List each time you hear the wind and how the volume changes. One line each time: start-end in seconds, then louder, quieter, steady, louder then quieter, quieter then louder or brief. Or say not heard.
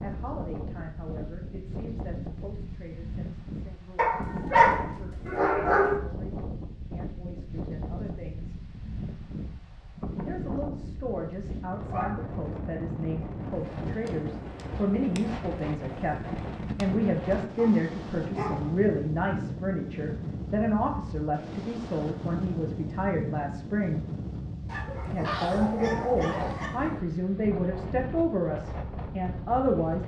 0.0-30.0 steady.